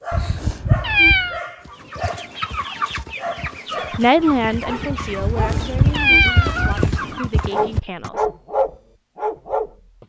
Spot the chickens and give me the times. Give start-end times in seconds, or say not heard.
1.6-7.6.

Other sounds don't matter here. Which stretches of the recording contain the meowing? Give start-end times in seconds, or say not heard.
0.1-1.4, 5.2-7.0.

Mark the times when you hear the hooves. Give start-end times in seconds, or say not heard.
1.6-8.1.